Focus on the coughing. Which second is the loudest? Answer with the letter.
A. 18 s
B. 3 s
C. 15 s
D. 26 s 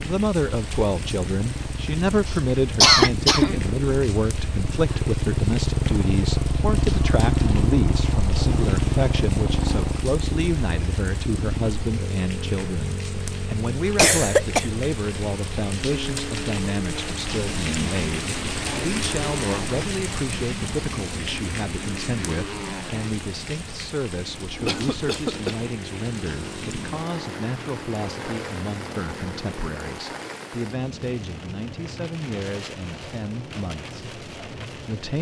B.